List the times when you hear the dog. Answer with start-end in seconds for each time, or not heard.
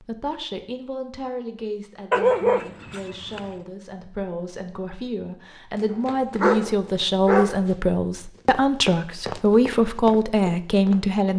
2.1-3.5, 5.9-7.7.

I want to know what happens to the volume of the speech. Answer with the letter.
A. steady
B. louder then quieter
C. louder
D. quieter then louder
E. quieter
C.